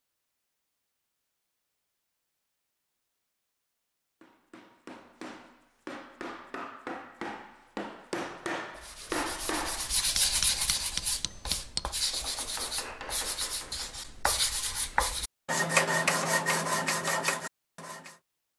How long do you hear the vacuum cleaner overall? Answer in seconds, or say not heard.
not heard.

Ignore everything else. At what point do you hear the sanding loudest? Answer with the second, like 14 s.
16 s.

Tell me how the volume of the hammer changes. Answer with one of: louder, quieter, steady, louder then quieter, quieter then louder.
louder then quieter.